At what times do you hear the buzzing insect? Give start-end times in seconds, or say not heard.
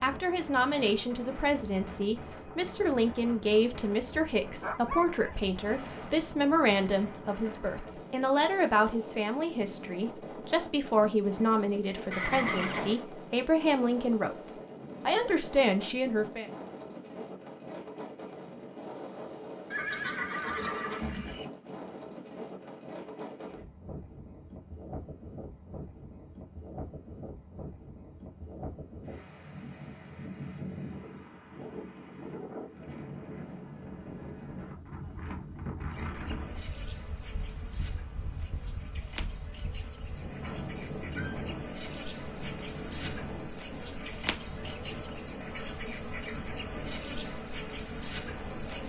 35.9-48.8.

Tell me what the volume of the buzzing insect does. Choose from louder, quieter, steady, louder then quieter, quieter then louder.
louder.